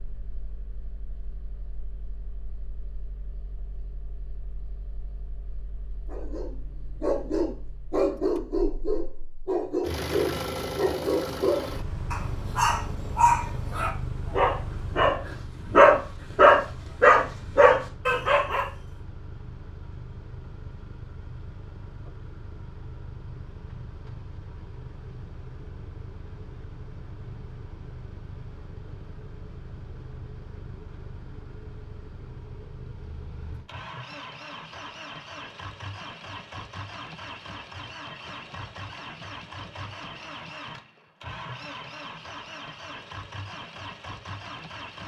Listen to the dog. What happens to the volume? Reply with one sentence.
The volume of the dog goes up.